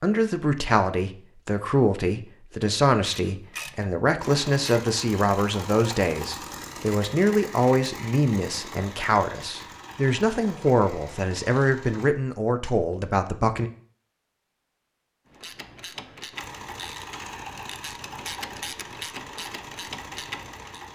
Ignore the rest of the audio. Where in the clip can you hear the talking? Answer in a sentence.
The talking can be heard from 0.0 to 13.7 s.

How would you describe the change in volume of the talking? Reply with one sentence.
The loudness of the talking stays about the same.